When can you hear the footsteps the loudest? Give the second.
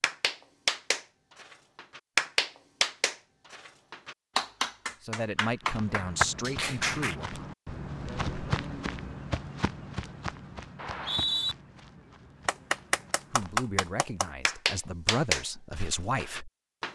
8 s.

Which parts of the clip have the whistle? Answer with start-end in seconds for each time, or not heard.
10.8-11.6.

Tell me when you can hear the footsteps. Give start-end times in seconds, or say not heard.
5.6-13.6.